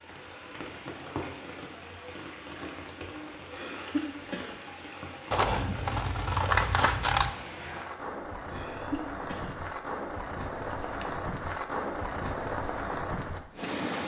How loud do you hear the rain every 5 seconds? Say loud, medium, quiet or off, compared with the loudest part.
medium, medium, loud.